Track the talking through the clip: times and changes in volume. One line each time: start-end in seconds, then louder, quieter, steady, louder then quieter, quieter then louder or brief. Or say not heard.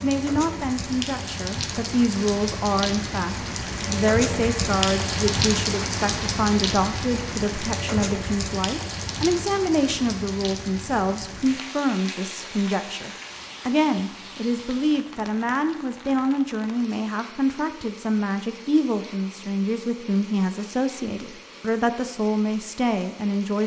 0.0-23.6 steady.